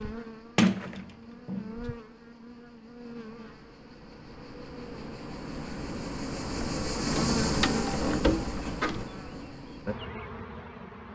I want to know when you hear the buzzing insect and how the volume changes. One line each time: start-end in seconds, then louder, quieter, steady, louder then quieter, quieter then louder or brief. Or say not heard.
0.0-11.1 louder then quieter.